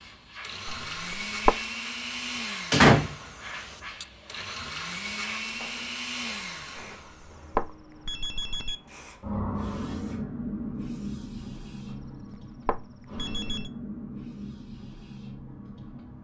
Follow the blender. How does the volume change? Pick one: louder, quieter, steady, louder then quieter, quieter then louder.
quieter then louder.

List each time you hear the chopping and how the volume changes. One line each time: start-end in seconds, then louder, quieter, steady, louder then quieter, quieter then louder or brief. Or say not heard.
not heard.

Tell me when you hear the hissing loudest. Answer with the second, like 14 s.
10 s.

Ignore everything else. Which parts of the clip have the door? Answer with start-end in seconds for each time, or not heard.
2.7-4.0.